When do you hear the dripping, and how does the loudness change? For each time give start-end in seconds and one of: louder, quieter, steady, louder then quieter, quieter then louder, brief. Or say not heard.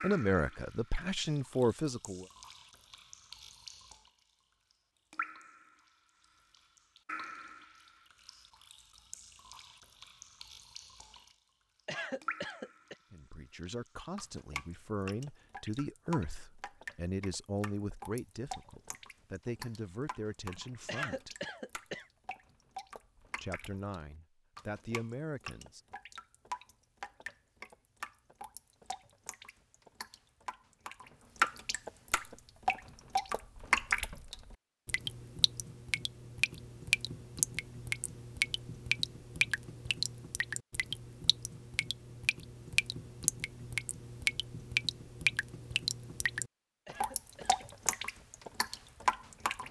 0.0-4.1 louder
5.1-5.8 brief
6.5-11.3 quieter then louder
12.2-12.9 brief
13.6-49.6 louder.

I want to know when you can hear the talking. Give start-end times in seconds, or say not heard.
0.0-2.2, 13.1-21.4, 23.4-25.8.